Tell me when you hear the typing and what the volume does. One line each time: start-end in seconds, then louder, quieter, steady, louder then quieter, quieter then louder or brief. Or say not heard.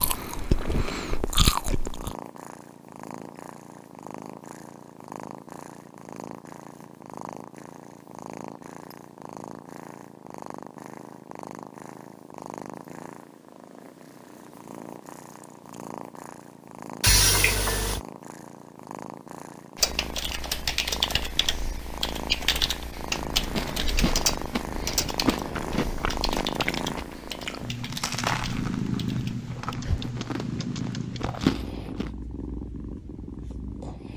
19.8-31.4 quieter.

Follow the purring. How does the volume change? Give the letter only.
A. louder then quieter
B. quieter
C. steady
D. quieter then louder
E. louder
E.